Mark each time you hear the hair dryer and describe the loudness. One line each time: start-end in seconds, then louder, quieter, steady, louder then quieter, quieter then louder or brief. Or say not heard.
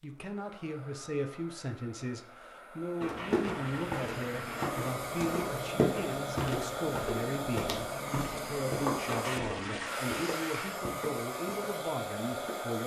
0.0-12.8 louder.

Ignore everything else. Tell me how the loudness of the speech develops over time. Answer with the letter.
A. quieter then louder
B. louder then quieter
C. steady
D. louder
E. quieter
C.